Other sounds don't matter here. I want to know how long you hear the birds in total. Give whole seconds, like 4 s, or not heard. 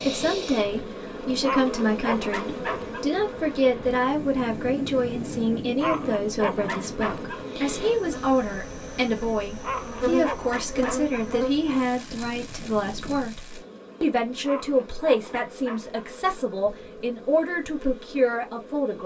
not heard.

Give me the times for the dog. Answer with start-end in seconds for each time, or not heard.
1.4-3.0, 5.8-7.5, 9.6-11.2, 14.4-16.1.